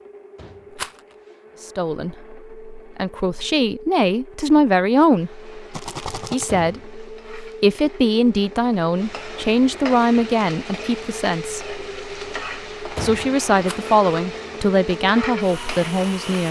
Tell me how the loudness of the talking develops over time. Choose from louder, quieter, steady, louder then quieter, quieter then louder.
steady.